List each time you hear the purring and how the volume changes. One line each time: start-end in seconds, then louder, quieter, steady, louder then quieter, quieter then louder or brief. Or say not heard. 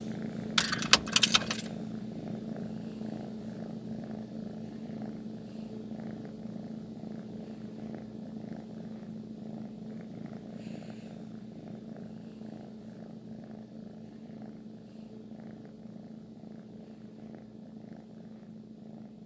0.0-19.2 quieter.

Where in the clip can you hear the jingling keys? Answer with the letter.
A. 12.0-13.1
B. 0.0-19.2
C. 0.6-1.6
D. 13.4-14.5
C.